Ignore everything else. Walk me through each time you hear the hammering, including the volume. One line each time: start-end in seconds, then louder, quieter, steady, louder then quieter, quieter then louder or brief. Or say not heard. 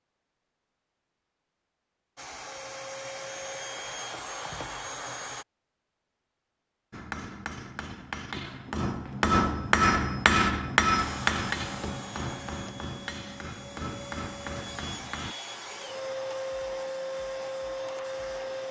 6.9-15.3 louder then quieter.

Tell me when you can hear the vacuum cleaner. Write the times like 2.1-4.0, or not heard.
2.1-5.5, 10.9-18.6.